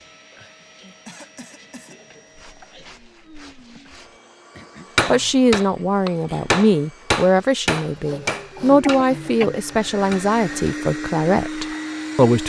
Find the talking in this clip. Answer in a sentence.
You can hear the talking from 5.0 to 12.4 s.